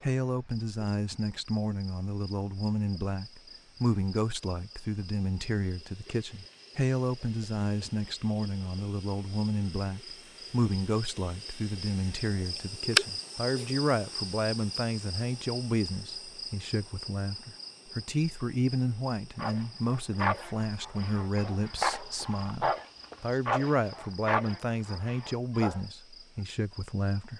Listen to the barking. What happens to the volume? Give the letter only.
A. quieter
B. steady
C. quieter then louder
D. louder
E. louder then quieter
B.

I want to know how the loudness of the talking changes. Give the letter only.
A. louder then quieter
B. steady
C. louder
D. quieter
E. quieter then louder
B.